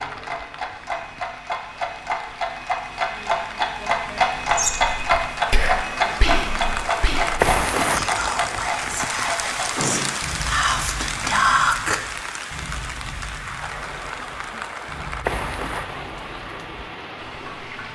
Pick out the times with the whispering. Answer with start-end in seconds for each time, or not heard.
4.5-12.0.